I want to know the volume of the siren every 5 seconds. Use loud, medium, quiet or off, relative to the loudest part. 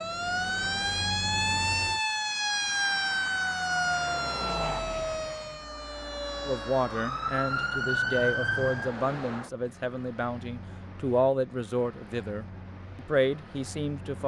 loud, loud, off.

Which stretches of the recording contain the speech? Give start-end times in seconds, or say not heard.
6.5-14.2.